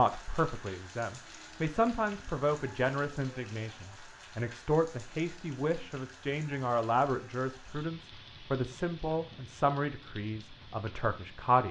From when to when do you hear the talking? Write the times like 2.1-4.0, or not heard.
0.0-11.6.